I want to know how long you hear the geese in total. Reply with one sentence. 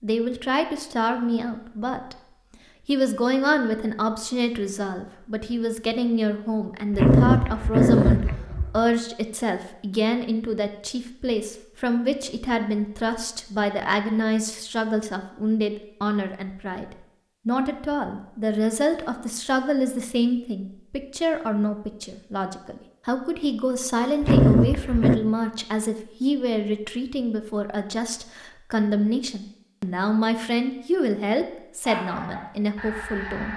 You can hear the geese for 2 seconds altogether.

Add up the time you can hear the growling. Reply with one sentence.
You can hear the growling for 3 seconds altogether.